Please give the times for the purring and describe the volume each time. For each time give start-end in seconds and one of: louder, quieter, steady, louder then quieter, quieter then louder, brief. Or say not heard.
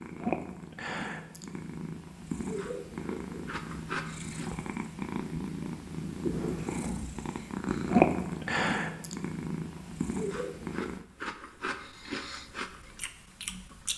0.0-11.1 louder then quieter.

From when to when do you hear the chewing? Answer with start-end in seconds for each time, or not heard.
2.5-4.5, 10.2-13.9.